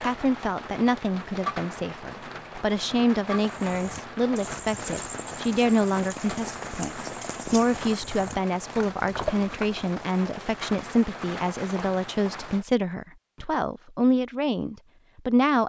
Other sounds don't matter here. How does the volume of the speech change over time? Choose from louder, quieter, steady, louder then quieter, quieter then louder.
steady.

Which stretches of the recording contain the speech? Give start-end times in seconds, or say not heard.
0.0-15.6.